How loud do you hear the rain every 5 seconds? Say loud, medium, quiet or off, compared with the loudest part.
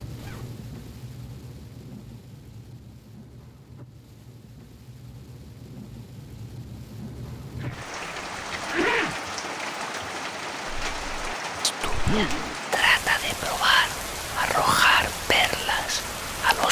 medium, loud, loud, loud.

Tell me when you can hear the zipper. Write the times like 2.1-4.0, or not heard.
0.1-0.6, 7.6-9.2, 11.8-12.6.